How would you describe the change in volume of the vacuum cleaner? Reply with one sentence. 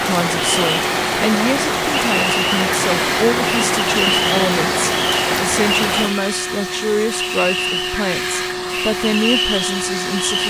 The loudness of the vacuum cleaner stays about the same.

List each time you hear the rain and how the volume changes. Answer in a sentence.
You can hear the rain from 0.0 to 6.2 s, at a steady volume.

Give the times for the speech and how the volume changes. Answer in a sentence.
The speech can be heard from 0.0 to 10.4 s, at a steady volume.